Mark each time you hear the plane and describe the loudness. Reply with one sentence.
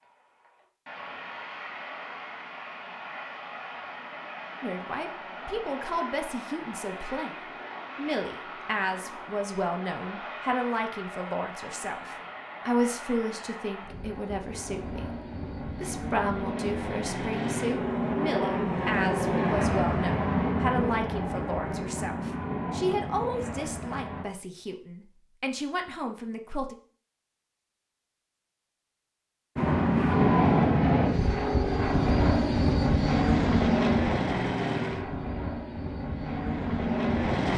The plane can be heard from 0.0 to 24.2 s, getting louder; and from 29.6 to 37.5 s, getting quieter.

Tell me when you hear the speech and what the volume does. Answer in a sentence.
The speech can be heard briefly from 4.6 to 7.3 s; and from 8.0 to 26.8 s, at a steady volume.